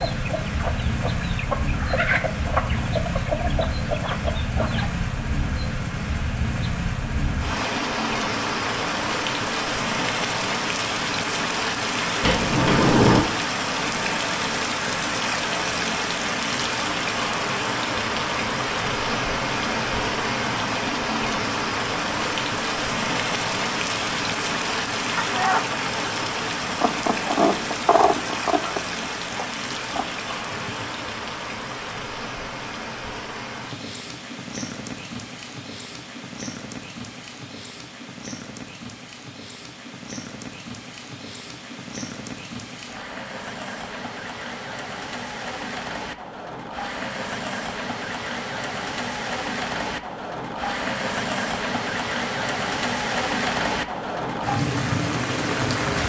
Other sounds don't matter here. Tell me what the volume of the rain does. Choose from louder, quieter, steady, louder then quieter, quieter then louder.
quieter then louder.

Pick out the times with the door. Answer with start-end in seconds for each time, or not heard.
12.2-13.2.